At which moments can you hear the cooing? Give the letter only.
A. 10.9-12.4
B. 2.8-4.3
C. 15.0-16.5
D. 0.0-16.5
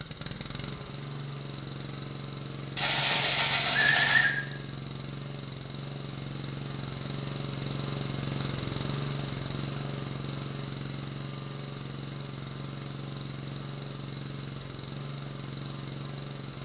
B.